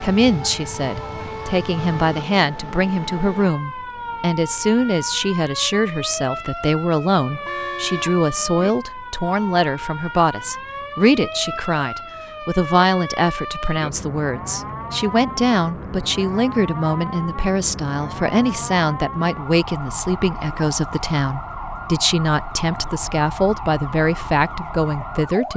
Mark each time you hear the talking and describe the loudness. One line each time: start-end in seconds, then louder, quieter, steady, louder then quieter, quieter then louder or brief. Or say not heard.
0.0-25.5 steady.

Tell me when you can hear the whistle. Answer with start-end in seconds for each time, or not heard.
not heard.